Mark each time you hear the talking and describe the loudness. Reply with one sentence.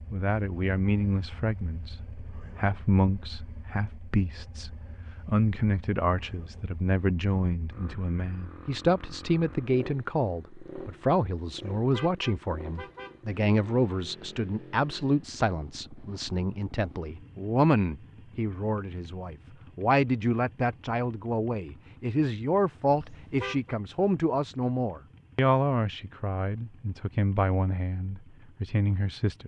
You can hear the talking from 0.1 to 29.4 s, at a steady volume.